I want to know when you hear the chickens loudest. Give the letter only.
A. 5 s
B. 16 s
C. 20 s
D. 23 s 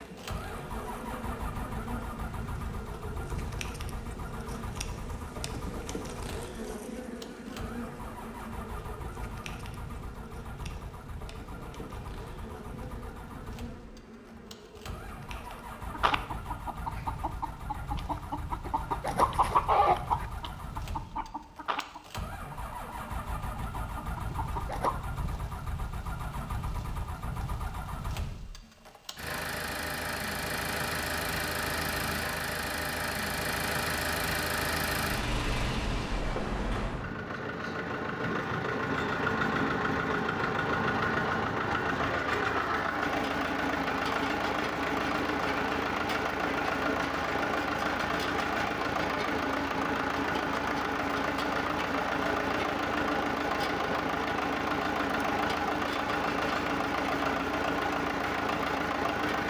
C.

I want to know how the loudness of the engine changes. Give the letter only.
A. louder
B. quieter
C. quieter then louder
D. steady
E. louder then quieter
A.